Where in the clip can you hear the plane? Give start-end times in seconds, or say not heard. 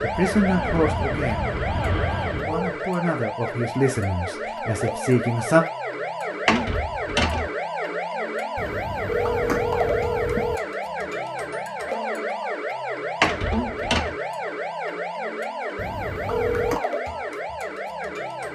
0.1-2.5.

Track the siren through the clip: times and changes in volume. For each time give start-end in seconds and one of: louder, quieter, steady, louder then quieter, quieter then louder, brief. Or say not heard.
0.0-18.4 steady.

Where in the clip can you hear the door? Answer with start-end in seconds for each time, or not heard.
6.5-7.5, 13.2-14.2.